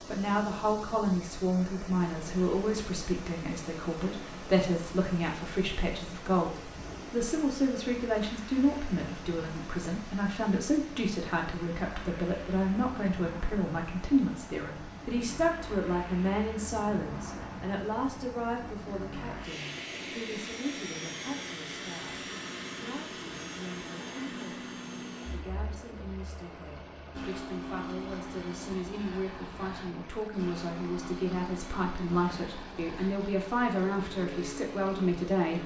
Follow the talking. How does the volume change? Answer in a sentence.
The loudness of the talking goes down, then up.